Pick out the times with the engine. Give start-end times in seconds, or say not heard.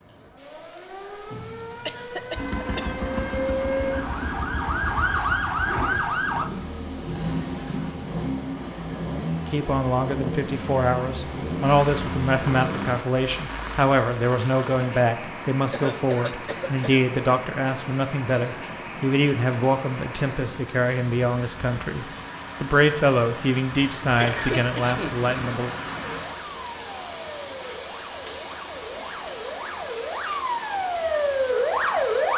2.4-13.1.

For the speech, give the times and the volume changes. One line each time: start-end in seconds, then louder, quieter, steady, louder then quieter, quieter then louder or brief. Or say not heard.
9.4-25.7 steady.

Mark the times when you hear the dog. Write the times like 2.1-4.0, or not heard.
not heard.